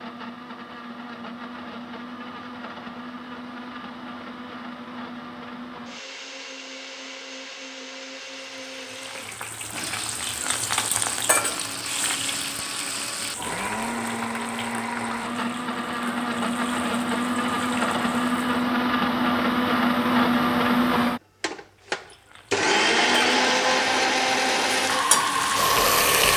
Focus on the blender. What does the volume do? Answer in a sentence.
The loudness of the blender goes up.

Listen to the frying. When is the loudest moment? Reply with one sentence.
The loudest moment of the frying is at 26 seconds.